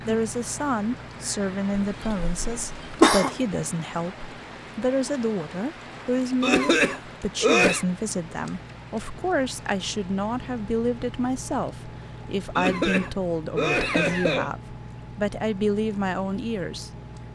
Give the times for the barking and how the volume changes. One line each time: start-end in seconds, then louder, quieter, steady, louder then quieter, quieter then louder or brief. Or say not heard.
not heard.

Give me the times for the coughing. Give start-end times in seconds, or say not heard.
2.0-3.3, 6.4-7.8, 12.6-14.5.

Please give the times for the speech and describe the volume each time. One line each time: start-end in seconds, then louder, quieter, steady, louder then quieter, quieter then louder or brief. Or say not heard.
0.1-16.9 steady.